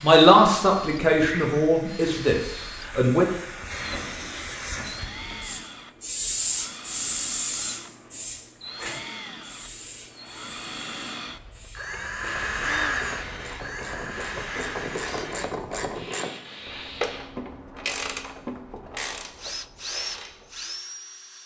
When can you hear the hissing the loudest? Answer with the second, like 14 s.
7 s.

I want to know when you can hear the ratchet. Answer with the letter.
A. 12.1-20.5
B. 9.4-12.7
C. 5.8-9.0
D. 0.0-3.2
A.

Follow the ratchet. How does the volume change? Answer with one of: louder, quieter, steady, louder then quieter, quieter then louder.
louder then quieter.